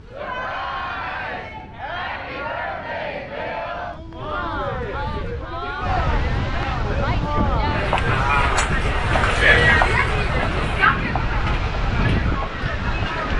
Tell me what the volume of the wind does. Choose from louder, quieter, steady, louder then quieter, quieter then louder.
louder.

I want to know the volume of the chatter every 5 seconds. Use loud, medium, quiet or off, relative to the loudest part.
medium, loud, loud.